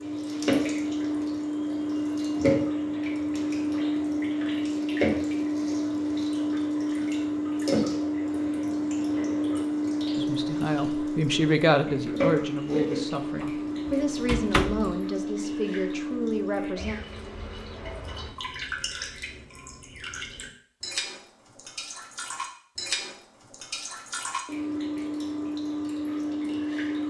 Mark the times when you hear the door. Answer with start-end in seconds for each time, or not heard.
13.4-15.0.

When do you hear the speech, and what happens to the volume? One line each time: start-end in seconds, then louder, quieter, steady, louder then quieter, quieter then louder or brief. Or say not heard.
10.2-16.9 quieter.